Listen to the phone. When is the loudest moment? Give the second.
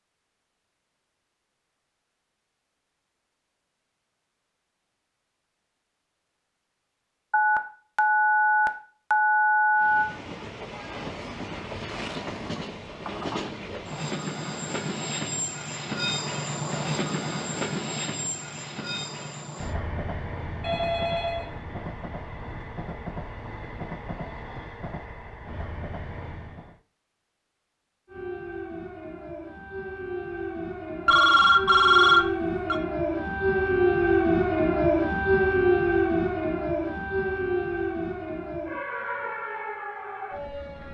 32 s.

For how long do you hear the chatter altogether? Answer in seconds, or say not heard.
not heard.